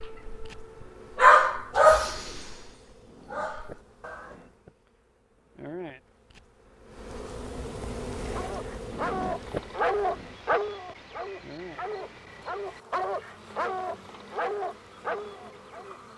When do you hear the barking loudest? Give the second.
1 s.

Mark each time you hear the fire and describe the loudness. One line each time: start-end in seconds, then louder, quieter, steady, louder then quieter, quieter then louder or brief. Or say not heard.
not heard.